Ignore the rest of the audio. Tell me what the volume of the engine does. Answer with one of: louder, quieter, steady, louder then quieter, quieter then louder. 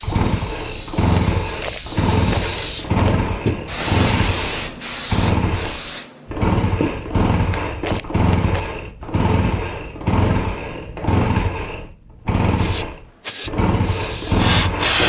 steady.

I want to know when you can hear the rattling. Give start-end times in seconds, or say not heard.
1.6-3.2, 7.8-8.7.